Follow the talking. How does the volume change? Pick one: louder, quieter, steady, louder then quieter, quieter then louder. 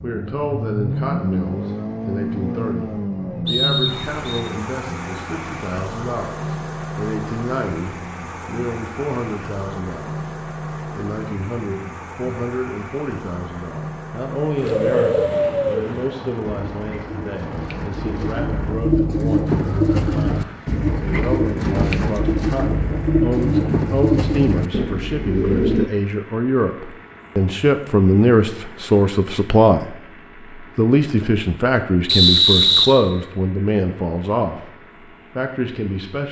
louder.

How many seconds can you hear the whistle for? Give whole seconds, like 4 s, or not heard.
2 s.